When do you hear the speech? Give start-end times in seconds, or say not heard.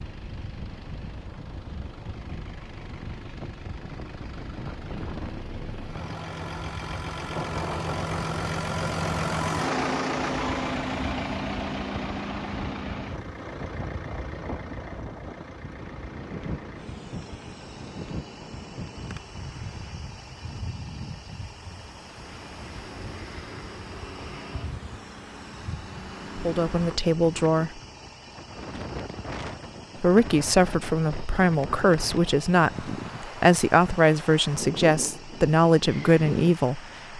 26.4-27.8, 30.0-37.1.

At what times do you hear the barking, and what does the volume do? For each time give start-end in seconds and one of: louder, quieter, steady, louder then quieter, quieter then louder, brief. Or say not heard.
not heard.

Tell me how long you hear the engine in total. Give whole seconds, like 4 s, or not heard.
37 s.